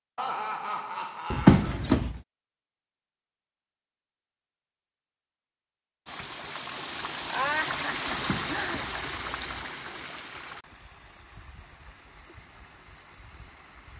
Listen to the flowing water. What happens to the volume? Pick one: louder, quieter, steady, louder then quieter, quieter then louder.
quieter.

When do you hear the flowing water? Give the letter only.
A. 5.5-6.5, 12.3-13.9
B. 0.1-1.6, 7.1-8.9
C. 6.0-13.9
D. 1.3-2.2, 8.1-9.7
C.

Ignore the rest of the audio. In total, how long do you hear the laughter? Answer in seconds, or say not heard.
3 s.